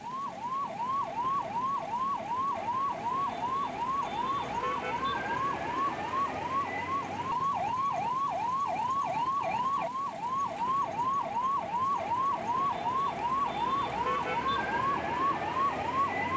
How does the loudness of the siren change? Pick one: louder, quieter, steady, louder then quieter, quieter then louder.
steady.